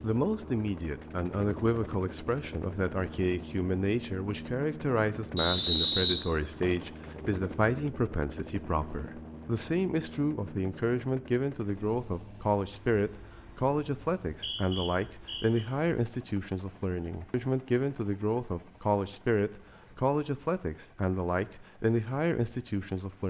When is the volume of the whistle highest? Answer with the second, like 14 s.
6 s.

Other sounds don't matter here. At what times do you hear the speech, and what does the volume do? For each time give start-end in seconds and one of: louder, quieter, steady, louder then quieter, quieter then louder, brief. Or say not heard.
0.0-23.2 steady.